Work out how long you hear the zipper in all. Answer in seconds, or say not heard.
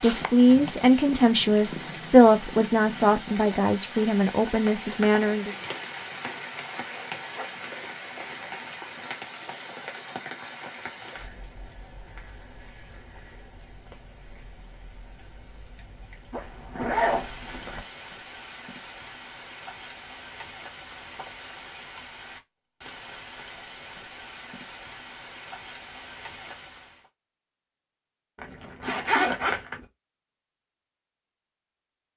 4 s.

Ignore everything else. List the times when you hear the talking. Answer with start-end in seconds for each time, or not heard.
0.0-5.5.